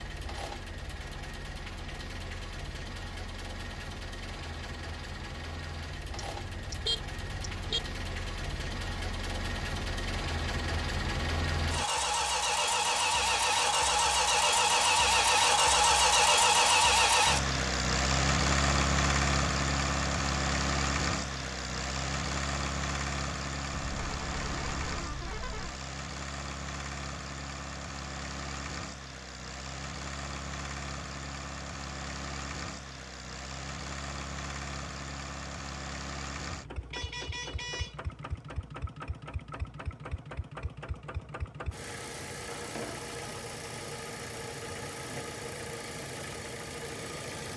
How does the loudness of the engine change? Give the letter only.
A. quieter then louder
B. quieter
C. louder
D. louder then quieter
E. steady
D.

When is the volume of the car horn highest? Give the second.
7 s.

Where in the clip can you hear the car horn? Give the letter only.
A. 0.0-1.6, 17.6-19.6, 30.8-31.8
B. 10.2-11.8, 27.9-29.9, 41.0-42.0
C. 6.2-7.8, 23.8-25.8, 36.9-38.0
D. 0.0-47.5
C.